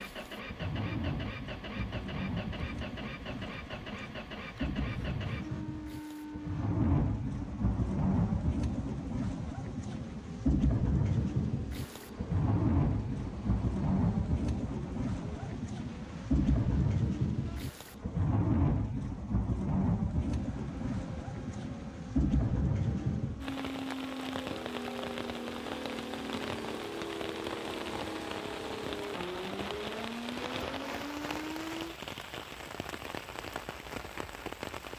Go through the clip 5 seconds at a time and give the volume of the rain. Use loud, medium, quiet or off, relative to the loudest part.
medium, loud, loud, loud, loud, medium, medium.